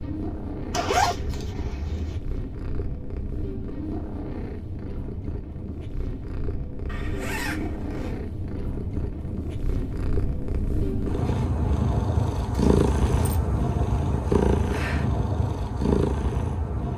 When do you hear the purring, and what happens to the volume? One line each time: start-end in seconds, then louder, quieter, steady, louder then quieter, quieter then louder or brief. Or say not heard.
0.0-16.9 louder.